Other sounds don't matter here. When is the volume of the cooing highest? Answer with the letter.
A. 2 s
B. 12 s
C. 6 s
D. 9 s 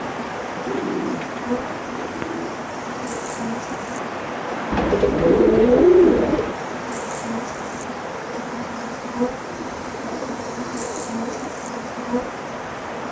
C.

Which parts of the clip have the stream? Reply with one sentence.
You can hear the stream from 0.0 to 13.0 s.